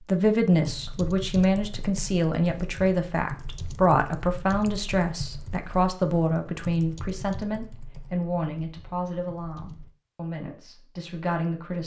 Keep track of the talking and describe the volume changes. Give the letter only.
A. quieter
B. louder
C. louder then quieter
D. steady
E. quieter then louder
A.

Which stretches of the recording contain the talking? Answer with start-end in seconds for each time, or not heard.
0.1-11.8.